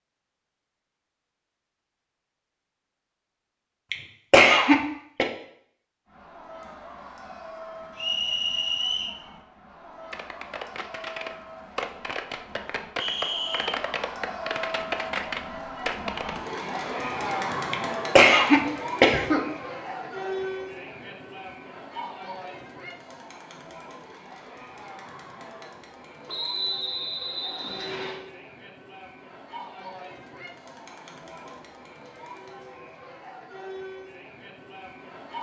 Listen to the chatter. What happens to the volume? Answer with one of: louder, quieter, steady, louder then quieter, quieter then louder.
louder then quieter.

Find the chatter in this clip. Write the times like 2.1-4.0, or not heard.
6.0-35.3.